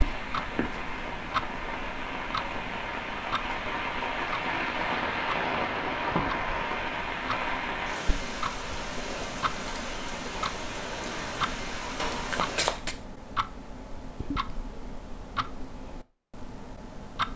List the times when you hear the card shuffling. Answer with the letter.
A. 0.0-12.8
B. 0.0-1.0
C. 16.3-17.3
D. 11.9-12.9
D.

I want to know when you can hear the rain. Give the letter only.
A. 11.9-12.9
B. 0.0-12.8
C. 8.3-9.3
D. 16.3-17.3
B.